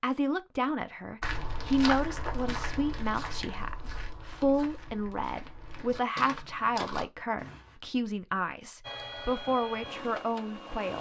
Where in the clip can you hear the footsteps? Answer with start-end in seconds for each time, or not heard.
1.2-7.7.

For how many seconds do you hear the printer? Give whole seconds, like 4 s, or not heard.
2 s.